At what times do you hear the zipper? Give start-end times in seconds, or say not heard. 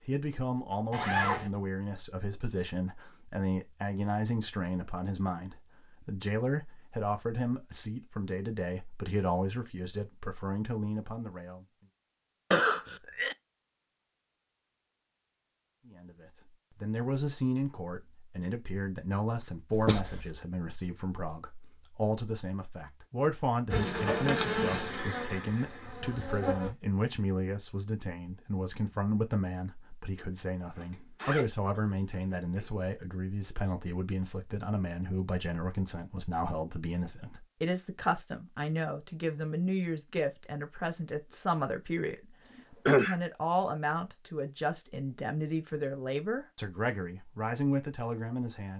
0.9-1.5, 30.8-32.7.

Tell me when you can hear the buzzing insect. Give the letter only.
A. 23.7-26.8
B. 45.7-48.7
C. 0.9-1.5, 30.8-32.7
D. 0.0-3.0
A.